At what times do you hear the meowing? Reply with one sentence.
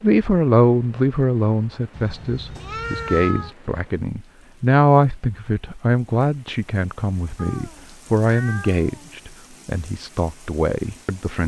The meowing can be heard from 1.9 to 3.5 s and from 7.3 to 9.2 s.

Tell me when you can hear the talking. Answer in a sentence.
You can hear the talking from 0.0 to 11.4 s.